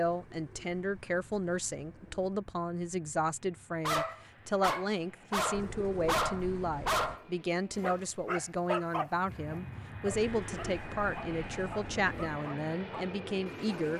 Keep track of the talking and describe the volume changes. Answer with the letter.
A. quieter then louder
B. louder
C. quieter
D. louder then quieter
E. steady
E.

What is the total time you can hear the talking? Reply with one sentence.
The talking can be heard for 14 seconds in total.